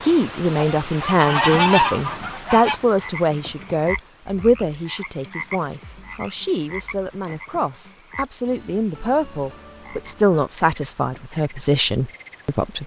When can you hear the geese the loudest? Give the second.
2 s.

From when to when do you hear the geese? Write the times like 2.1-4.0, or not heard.
0.6-2.8.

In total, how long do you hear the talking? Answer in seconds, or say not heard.
13 s.